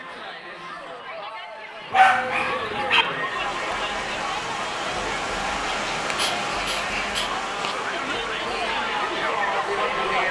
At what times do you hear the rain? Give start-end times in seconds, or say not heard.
3.1-10.2.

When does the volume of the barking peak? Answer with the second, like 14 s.
2 s.